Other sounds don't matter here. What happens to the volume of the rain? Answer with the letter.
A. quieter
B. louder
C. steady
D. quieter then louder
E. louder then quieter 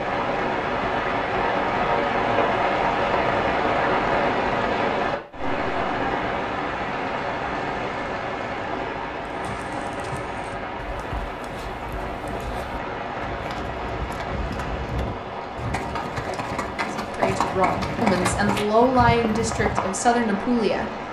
A.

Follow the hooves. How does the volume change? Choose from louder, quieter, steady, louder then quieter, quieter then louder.
louder.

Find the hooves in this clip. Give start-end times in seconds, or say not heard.
9.2-19.9.